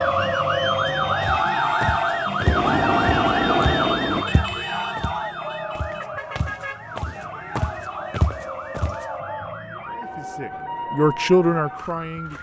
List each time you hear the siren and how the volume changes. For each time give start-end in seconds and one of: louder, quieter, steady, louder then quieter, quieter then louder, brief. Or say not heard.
0.0-12.3 quieter.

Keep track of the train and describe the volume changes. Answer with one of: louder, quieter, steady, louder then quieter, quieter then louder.
louder.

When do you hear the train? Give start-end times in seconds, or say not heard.
0.0-4.2.